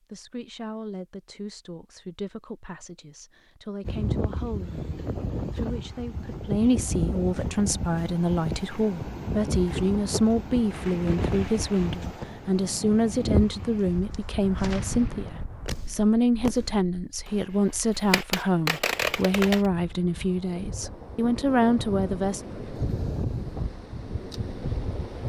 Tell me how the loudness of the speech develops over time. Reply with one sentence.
The loudness of the speech goes up.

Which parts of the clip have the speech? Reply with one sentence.
The speech can be heard from 0.1 to 22.4 s.